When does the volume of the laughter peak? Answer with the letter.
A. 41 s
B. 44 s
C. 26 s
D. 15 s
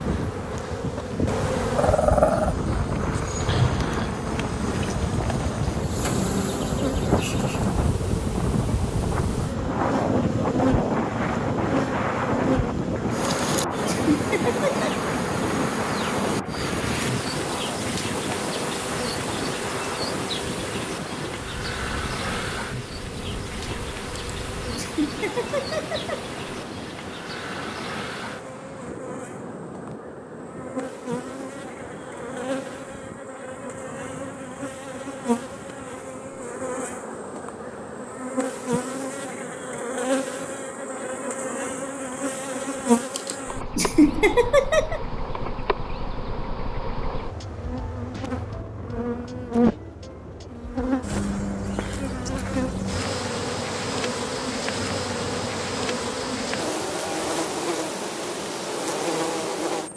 B.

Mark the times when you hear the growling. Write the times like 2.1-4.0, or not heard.
1.8-2.5.